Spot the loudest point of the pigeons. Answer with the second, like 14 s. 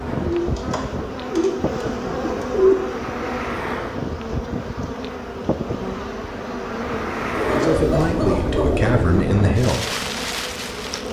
3 s.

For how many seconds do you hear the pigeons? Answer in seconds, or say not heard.
5 s.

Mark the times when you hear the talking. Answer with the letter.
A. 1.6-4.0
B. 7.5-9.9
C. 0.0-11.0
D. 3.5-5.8
B.